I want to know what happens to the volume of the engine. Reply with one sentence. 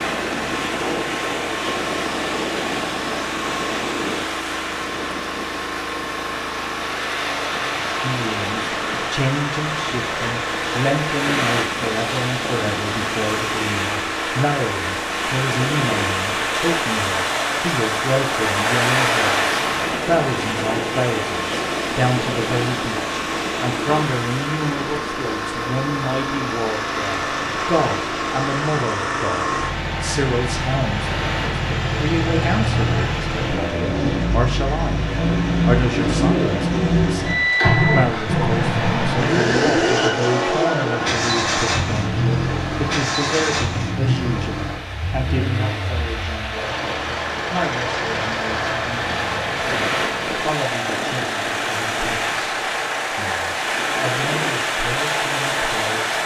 The volume of the engine goes up, then down.